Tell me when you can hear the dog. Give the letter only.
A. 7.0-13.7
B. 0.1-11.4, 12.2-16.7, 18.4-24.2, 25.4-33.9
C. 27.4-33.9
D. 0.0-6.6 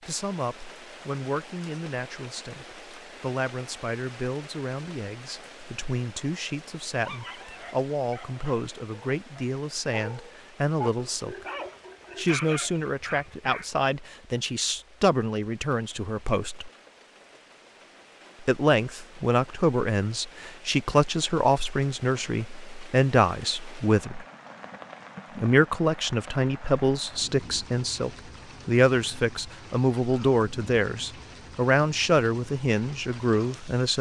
A.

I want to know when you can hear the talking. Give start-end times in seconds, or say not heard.
0.1-11.4, 12.2-16.7, 18.4-24.2, 25.4-33.9.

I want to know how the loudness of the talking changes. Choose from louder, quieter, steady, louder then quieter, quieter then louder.
louder.